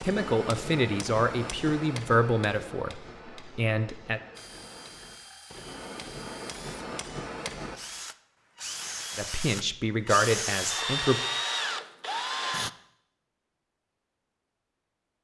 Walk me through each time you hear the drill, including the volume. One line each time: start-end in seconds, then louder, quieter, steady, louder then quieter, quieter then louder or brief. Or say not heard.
4.3-12.7 louder.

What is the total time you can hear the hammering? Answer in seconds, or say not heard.
8 s.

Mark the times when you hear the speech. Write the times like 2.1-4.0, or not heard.
0.0-4.2, 9.2-11.2.